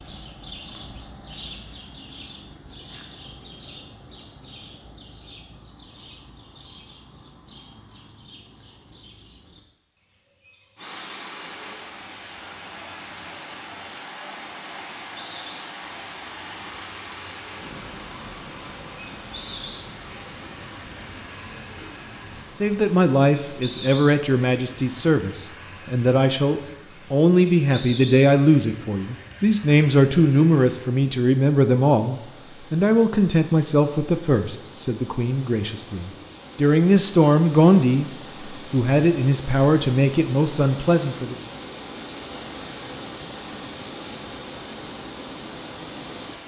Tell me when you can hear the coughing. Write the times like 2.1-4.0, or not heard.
not heard.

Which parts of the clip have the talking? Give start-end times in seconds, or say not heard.
22.6-41.4.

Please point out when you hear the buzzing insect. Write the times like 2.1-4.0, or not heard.
not heard.